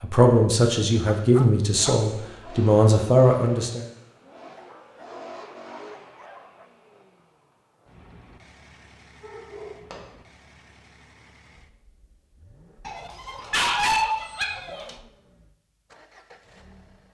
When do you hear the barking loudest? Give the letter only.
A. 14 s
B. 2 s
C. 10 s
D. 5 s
A.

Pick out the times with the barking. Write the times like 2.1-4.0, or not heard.
1.1-2.0, 4.5-6.7, 9.2-10.0, 12.8-14.9.